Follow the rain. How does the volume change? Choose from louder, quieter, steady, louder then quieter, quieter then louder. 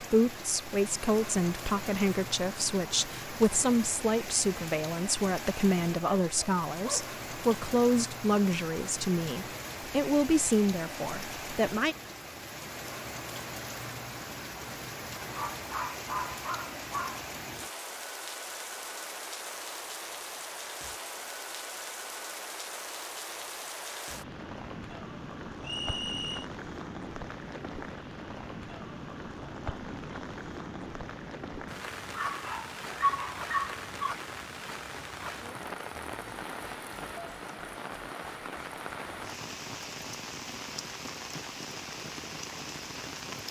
steady.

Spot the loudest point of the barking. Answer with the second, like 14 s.
33 s.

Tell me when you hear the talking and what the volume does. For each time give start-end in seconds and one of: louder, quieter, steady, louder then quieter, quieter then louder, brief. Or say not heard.
0.0-11.9 steady.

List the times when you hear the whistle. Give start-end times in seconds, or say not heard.
25.6-26.5.